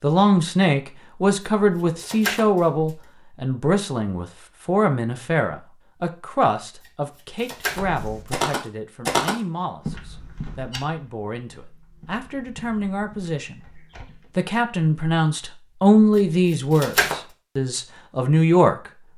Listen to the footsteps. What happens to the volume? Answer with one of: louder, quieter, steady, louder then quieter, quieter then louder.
quieter.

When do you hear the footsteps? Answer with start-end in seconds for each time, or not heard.
7.7-14.3.